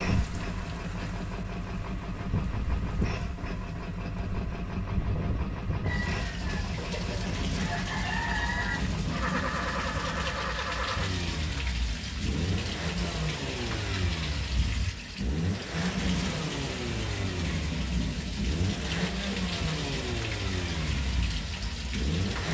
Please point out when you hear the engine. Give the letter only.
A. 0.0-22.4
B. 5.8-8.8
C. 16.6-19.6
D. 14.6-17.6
A.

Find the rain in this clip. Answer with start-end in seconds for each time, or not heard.
0.0-22.4.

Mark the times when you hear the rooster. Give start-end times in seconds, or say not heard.
5.8-8.8.